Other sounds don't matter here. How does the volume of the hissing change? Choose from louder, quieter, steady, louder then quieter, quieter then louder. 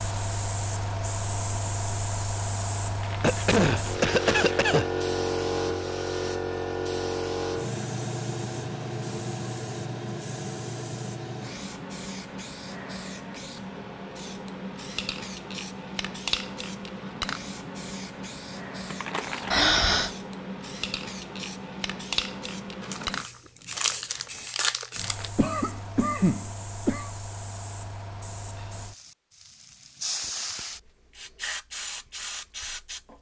quieter.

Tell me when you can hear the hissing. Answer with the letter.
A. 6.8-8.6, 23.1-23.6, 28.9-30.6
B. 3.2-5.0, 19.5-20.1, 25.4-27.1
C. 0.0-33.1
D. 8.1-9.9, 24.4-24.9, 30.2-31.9
C.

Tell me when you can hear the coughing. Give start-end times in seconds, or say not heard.
3.2-5.0, 19.5-20.1, 25.4-27.1.